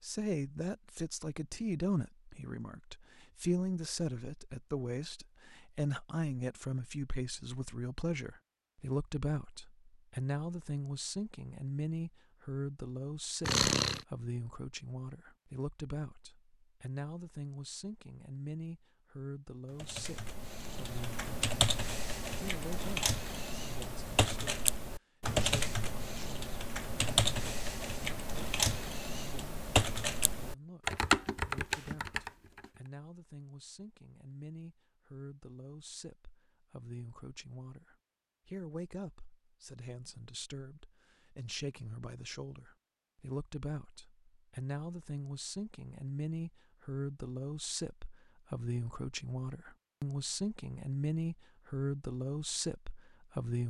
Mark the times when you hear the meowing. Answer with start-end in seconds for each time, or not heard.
13.4-14.1.